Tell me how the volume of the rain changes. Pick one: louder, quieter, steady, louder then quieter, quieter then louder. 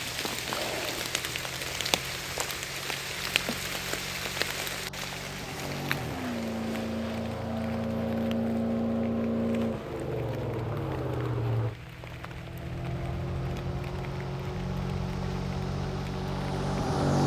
quieter.